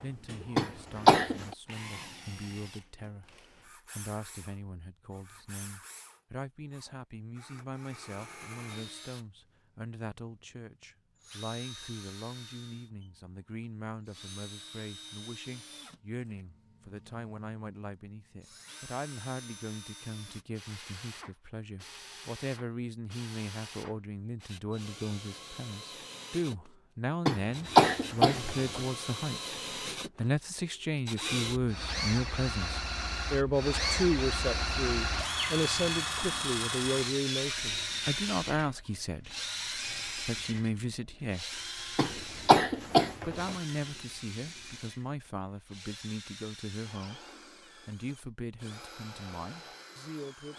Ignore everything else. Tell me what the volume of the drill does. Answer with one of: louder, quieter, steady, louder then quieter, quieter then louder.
louder then quieter.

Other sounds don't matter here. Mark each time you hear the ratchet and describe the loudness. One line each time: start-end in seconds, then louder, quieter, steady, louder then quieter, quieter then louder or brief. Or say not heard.
not heard.